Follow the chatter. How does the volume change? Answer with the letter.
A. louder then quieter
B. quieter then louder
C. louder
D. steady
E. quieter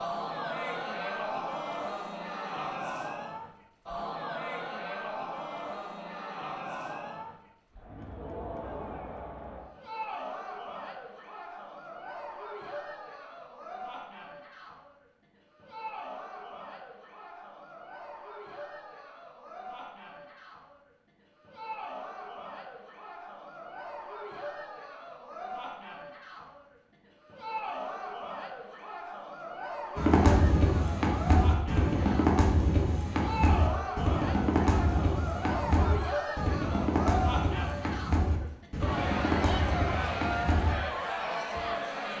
B.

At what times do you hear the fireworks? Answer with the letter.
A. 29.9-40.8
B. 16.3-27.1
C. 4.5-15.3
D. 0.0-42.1
A.